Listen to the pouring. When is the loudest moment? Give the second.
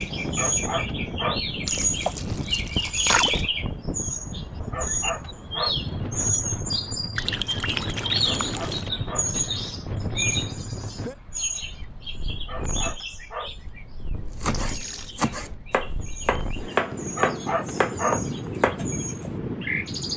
3 s.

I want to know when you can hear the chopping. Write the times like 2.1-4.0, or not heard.
14.2-19.3.